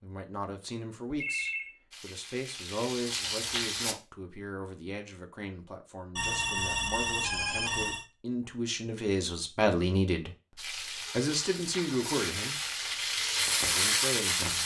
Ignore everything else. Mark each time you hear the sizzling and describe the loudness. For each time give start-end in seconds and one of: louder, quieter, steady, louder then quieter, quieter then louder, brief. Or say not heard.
1.9-4.0 brief
10.6-14.6 louder.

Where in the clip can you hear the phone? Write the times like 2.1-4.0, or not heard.
1.1-1.7, 6.2-8.1, 11.0-12.1.